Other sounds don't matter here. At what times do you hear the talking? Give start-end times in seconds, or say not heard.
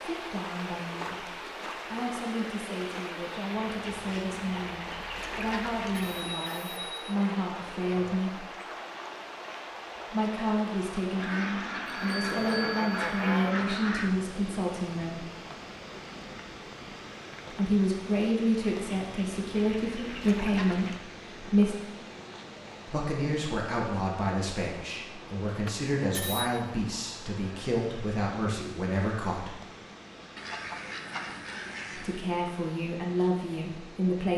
0.0-8.4, 10.1-15.2, 17.5-21.8, 22.9-29.6, 31.9-34.3.